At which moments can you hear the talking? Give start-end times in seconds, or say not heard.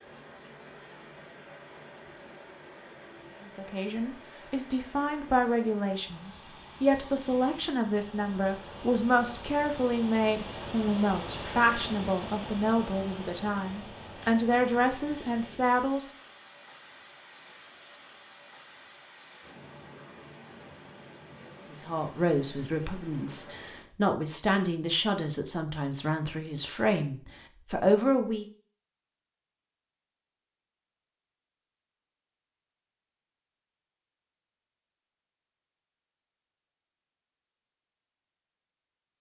3.5-16.1, 21.7-28.4.